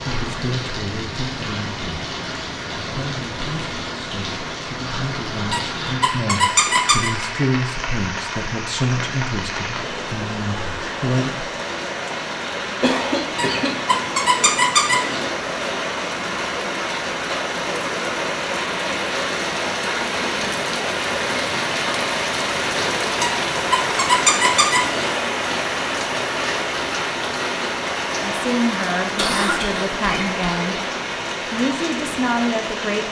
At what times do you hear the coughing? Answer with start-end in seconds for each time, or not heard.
12.8-14.0, 29.1-30.4.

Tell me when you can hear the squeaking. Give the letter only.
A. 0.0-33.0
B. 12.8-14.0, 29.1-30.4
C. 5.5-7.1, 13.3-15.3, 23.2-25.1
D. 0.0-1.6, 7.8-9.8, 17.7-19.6
C.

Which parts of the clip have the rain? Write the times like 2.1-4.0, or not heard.
0.0-33.0.